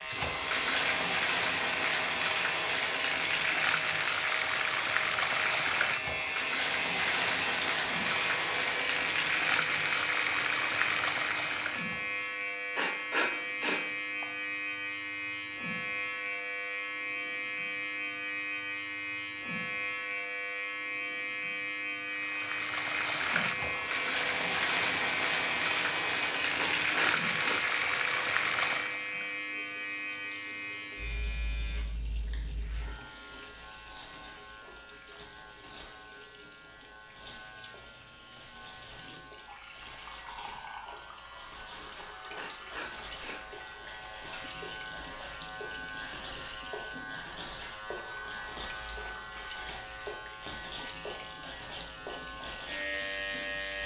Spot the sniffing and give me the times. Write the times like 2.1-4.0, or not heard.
12.8-14.2, 26.6-27.6, 42.4-43.4.